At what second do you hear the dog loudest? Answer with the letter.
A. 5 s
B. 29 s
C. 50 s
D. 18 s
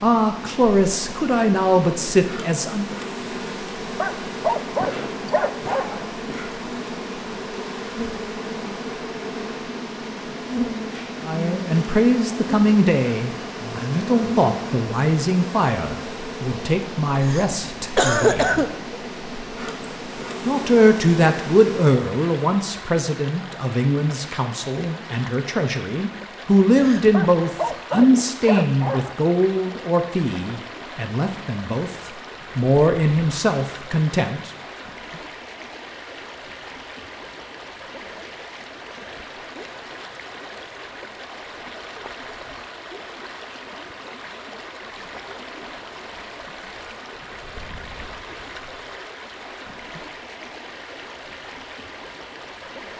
A.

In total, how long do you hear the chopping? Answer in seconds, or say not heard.
not heard.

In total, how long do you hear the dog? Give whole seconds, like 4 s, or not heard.
4 s.